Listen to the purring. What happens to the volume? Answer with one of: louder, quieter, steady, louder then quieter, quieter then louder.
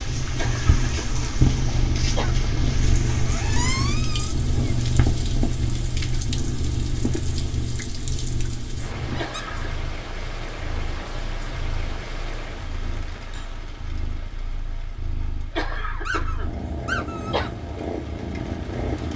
quieter then louder.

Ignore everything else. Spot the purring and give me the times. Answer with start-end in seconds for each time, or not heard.
0.0-19.1.